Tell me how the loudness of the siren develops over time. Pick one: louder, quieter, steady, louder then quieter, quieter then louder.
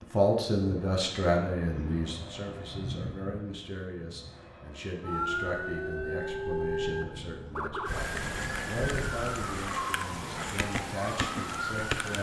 steady.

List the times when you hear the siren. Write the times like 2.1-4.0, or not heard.
5.0-12.1.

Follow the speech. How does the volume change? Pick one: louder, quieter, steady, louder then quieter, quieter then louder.
quieter.